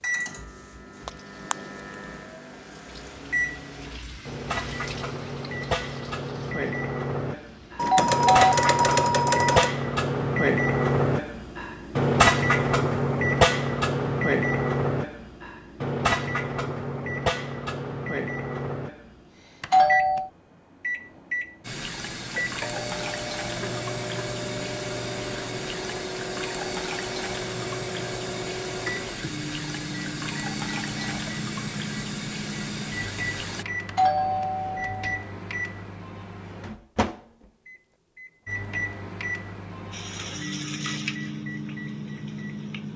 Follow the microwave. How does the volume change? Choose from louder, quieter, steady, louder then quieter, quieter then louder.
louder then quieter.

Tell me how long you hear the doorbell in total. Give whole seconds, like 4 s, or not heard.
4 s.